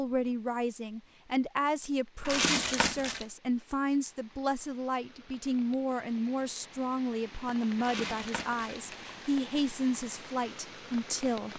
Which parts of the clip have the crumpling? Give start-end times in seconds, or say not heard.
2.2-3.2, 7.8-9.2.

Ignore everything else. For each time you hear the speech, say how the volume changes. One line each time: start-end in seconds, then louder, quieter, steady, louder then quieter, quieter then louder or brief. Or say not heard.
0.0-11.5 steady.